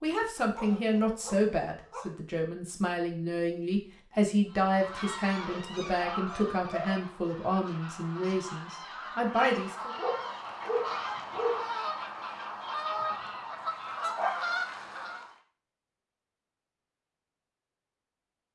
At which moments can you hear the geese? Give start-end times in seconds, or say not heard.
4.5-15.3.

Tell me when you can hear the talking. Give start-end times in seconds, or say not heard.
0.0-9.9.